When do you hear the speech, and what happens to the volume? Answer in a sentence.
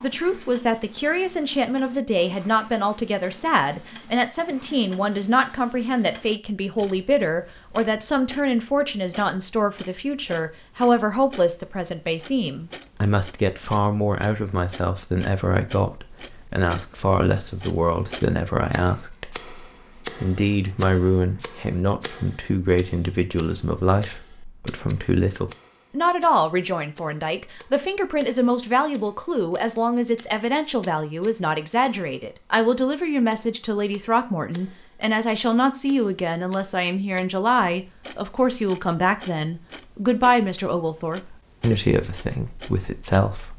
The speech can be heard from 0.0 to 43.5 s, at a steady volume.